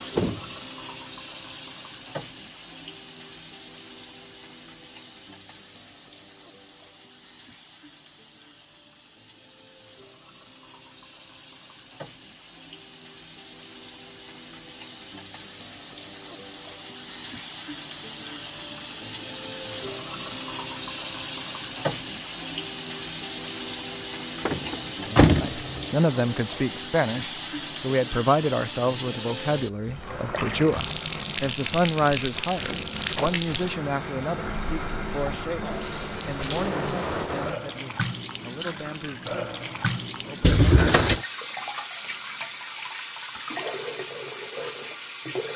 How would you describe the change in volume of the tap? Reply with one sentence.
The loudness of the tap goes up.